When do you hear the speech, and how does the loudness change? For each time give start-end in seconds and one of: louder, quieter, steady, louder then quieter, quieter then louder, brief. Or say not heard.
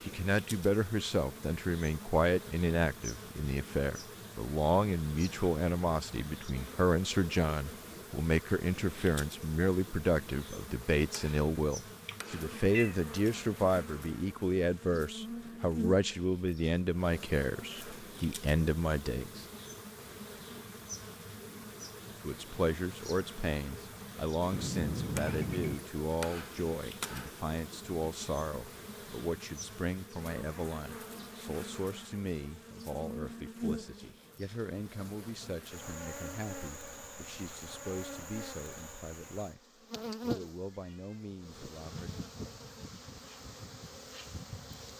0.0-19.4 steady
22.2-42.2 quieter.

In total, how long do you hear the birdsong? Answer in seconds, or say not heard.
not heard.